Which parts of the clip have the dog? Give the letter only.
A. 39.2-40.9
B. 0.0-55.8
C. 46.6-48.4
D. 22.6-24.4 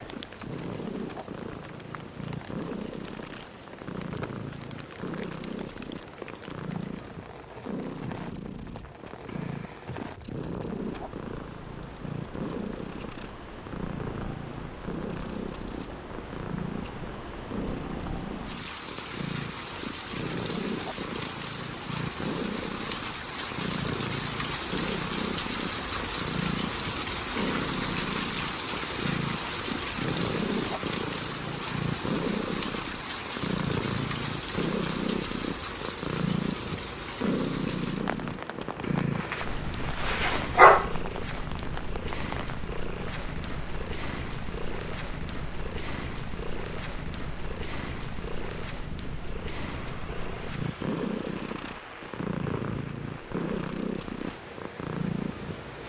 A.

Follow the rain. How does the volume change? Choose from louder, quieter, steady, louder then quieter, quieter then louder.
louder then quieter.